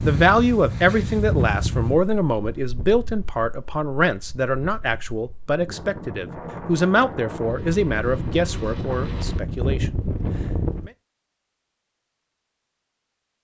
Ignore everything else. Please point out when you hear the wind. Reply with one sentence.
The wind can be heard from 0.0 to 10.9 s.